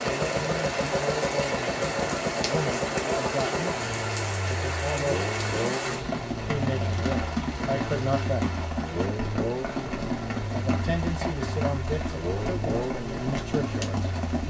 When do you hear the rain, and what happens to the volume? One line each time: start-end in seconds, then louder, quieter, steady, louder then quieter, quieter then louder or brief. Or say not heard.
0.0-14.4 steady.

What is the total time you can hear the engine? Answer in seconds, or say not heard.
14 s.